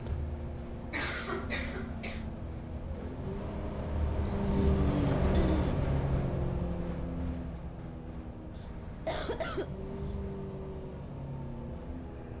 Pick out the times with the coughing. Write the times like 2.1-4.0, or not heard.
0.9-2.2, 4.3-5.8, 8.6-9.8.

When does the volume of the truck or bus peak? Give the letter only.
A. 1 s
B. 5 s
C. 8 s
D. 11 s
B.